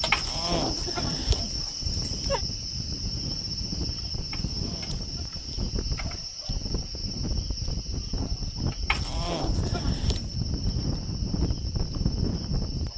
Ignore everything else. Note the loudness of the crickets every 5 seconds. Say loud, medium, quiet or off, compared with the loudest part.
loud, medium, medium.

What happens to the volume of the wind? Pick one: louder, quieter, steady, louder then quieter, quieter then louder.
louder.